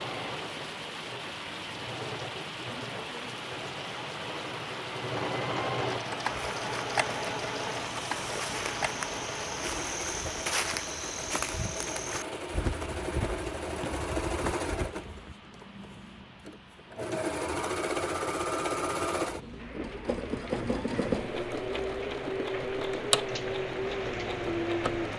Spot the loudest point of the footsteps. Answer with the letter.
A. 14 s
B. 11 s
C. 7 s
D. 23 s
B.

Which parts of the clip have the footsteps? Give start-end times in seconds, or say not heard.
6.3-15.3.